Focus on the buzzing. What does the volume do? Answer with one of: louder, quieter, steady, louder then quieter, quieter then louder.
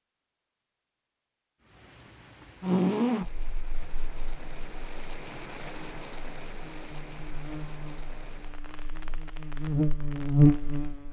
quieter then louder.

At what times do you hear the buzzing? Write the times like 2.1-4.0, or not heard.
2.6-11.0.